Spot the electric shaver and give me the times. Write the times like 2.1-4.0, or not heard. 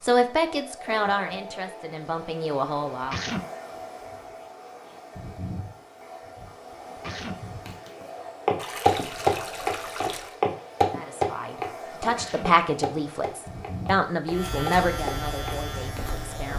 14.2-16.5.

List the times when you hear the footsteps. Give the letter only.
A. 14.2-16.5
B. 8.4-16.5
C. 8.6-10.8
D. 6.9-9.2
B.